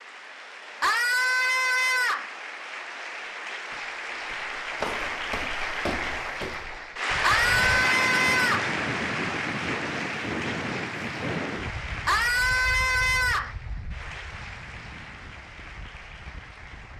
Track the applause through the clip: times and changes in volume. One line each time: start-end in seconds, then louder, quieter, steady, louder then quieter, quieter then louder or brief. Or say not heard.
0.0-16.9 louder then quieter.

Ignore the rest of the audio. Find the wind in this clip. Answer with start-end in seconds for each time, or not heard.
7.1-16.9.